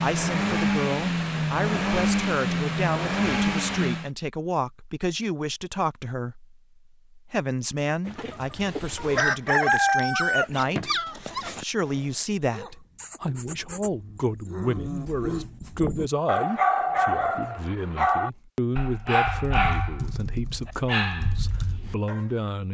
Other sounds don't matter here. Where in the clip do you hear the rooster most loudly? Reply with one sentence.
The loudest moment of the rooster is at 10 seconds.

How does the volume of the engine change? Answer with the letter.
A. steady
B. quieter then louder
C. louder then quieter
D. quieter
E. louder
A.